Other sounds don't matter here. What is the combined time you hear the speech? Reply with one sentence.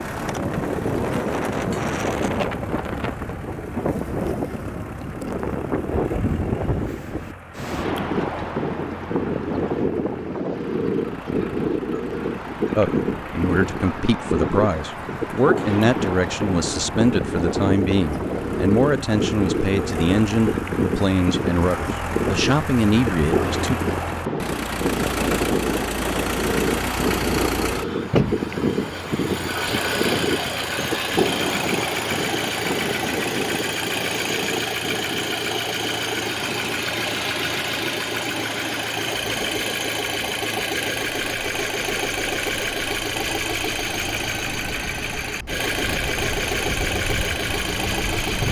The speech can be heard for 11 seconds in total.